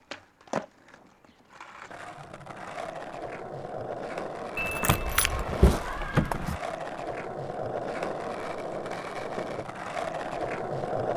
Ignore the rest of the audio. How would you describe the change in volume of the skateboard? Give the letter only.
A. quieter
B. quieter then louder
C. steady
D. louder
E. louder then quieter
D.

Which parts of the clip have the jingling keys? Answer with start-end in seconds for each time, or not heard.
4.5-6.6.